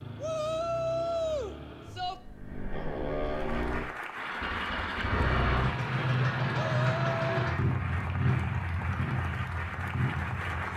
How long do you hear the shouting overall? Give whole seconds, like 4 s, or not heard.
3 s.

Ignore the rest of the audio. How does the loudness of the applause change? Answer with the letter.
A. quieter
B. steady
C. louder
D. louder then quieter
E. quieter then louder
B.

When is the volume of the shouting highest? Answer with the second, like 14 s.
1 s.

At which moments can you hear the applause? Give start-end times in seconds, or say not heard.
3.2-10.7.